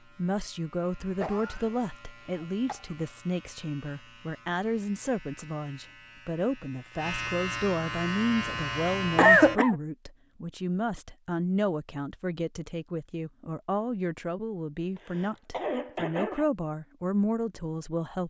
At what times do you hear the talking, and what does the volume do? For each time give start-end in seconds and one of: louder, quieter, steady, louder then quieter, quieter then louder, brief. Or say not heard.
0.1-18.2 steady.